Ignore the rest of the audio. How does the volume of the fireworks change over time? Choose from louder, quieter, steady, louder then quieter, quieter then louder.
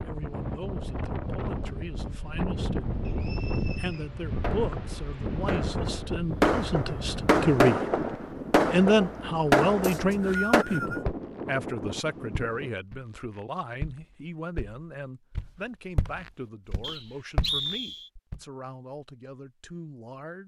louder.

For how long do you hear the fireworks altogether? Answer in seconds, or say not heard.
6 s.